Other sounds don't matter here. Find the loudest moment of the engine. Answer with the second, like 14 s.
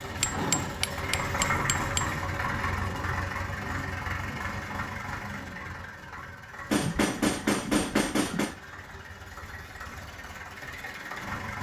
2 s.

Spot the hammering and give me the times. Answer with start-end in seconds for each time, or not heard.
0.2-2.1, 6.7-8.6.